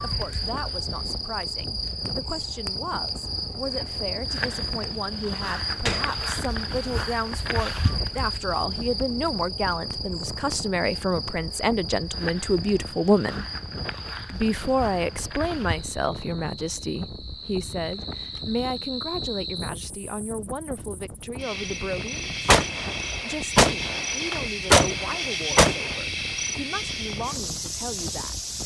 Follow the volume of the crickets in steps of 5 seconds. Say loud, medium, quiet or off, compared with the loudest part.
loud, loud, medium, medium, loud, loud.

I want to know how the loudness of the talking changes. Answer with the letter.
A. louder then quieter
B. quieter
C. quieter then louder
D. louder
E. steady
A.